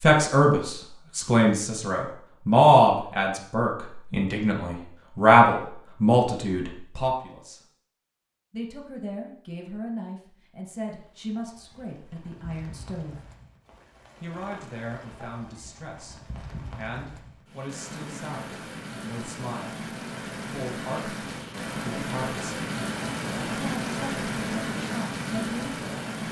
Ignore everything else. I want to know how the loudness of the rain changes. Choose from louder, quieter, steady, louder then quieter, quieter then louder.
louder.